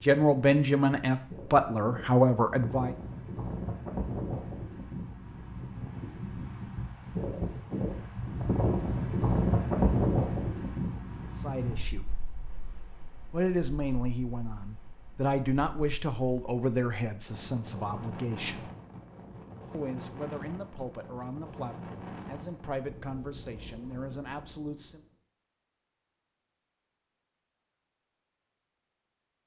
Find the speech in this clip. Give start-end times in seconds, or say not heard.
0.0-3.0, 11.3-12.1, 13.3-18.7, 19.7-25.0.